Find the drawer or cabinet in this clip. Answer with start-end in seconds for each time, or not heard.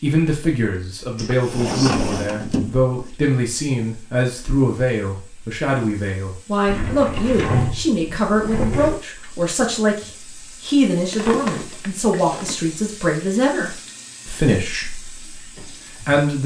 1.1-3.1, 6.7-9.0, 11.1-12.6.